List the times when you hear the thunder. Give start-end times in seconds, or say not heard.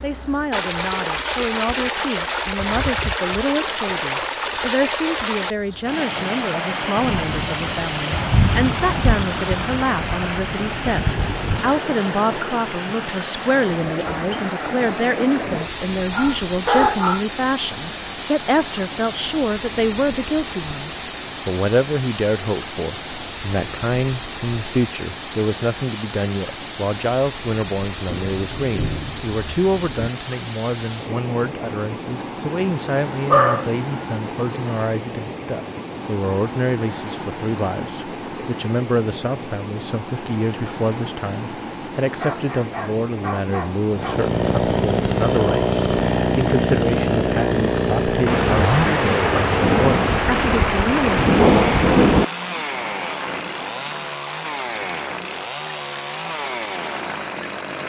7.0-11.8, 28.1-30.1, 48.2-52.2.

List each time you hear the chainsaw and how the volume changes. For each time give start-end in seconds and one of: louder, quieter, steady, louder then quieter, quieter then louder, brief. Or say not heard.
43.9-57.8 quieter.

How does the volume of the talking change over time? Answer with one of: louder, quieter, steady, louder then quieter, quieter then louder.
steady.